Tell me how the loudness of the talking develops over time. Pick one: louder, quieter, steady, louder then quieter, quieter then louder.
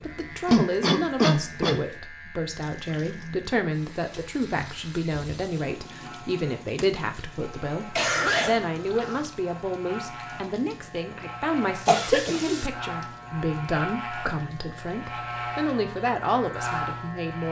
steady.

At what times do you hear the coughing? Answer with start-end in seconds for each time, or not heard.
0.5-1.8, 8.0-9.3, 11.8-12.7.